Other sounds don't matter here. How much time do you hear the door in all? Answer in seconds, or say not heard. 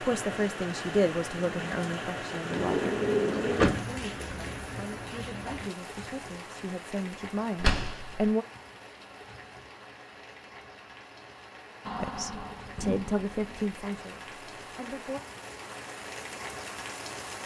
4 s.